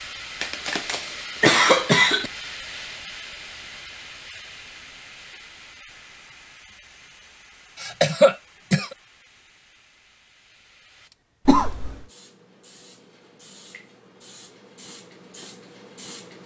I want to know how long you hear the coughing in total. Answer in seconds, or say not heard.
4 s.